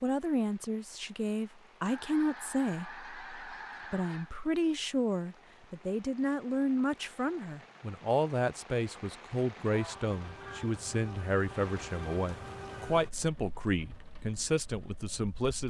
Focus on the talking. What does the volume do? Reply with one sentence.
The loudness of the talking stays about the same.